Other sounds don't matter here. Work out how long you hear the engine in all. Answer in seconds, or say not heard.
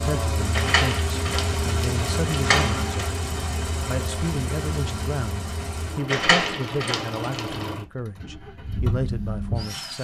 10 s.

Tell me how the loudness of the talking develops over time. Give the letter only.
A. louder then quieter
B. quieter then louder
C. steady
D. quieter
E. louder
C.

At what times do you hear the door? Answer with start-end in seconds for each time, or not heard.
0.5-3.2, 6.0-7.7.